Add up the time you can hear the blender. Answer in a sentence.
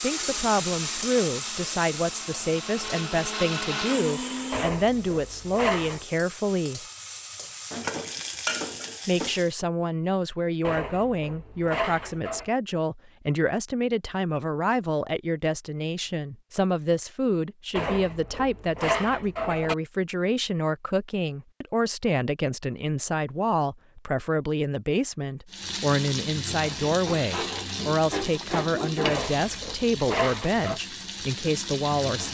The blender can be heard for 5 seconds in total.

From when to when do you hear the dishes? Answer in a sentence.
The dishes can be heard from 4.5 to 6.0 s, from 10.6 to 12.4 s, from 17.8 to 19.8 s and from 29.0 to 30.8 s.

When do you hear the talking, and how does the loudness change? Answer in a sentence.
You can hear the talking from 0.0 to 6.8 s, at a steady volume; and from 9.1 to 32.3 s, at a steady volume.